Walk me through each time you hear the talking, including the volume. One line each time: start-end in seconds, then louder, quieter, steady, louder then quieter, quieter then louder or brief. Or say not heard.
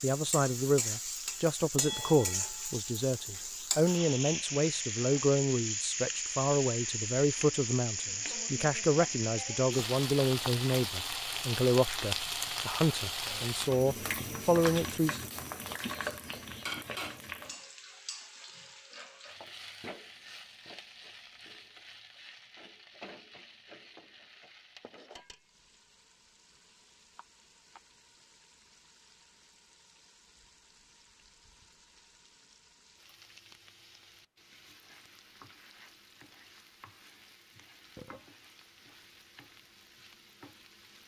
0.0-15.2 steady.